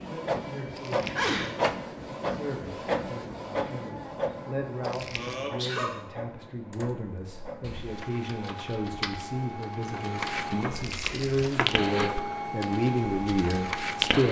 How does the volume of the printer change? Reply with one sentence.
The loudness of the printer goes down, then up.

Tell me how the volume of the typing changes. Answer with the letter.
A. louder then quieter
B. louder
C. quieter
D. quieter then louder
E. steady
A.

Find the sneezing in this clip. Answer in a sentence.
You can hear the sneezing from 0.9 to 1.5 s, from 5.2 to 6.0 s and from 10.9 to 11.3 s.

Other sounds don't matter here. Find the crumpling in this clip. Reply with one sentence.
You can hear the crumpling from 0.8 to 1.3 s, from 4.8 to 5.4 s and from 10.8 to 11.6 s.